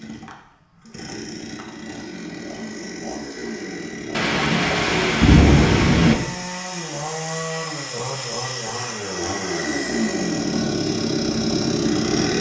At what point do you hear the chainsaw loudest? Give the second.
12 s.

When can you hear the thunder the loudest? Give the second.
5 s.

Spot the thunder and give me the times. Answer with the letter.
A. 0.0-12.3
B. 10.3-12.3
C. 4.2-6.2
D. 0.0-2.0
C.